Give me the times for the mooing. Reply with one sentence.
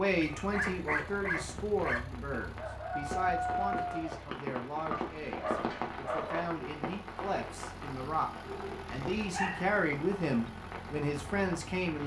The mooing can't be heard in this clip.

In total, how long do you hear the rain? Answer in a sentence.
You can hear the rain for 12 seconds altogether.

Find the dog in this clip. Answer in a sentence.
The dog can be heard from 0.2 to 2.0 s, from 4.9 to 6.5 s and from 8.4 to 9.8 s.